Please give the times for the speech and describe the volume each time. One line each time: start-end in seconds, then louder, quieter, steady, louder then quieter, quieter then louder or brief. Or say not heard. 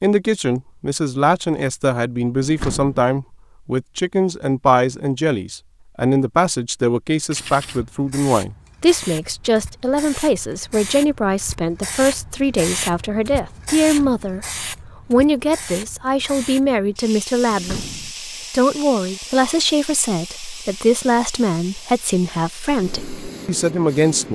0.0-24.2 steady.